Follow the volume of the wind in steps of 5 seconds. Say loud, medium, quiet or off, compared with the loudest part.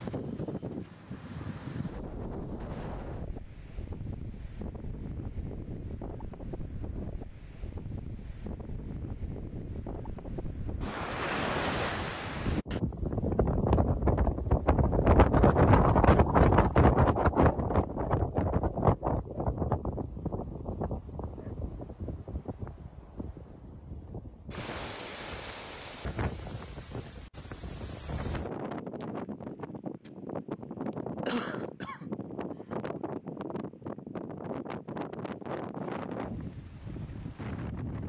quiet, quiet, medium, loud, quiet, quiet, quiet, quiet.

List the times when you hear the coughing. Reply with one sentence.
You can hear the coughing from 31.2 to 32.1 s.